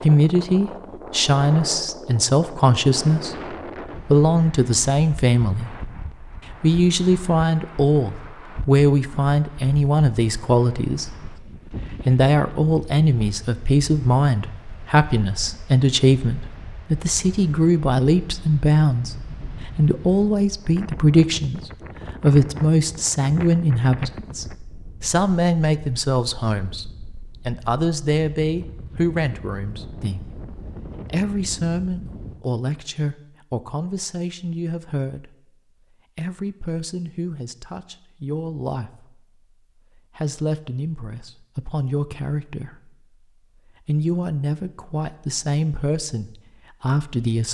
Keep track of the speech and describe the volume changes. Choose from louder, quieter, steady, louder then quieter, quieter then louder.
quieter.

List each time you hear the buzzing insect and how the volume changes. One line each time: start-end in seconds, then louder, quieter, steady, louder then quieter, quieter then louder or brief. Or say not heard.
not heard.